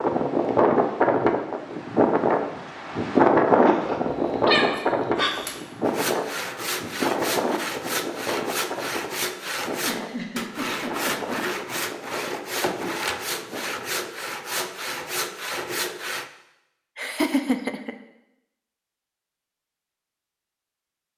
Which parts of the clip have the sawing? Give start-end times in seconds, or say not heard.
5.8-16.3.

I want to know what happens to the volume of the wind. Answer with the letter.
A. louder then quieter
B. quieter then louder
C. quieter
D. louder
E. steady
C.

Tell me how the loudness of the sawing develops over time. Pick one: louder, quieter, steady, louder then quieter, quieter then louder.
steady.